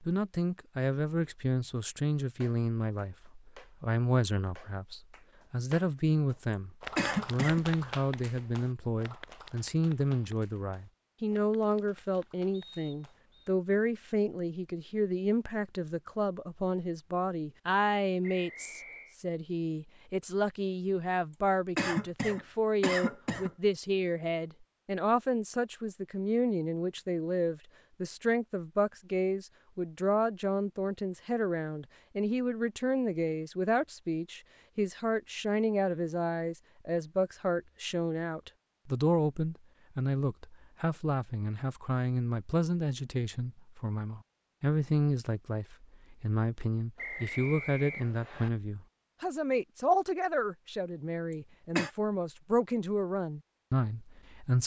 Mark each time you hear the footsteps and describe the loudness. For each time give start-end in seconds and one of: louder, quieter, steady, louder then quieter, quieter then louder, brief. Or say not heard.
not heard.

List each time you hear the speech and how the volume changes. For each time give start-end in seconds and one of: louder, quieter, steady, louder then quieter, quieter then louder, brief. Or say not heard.
0.0-54.6 steady.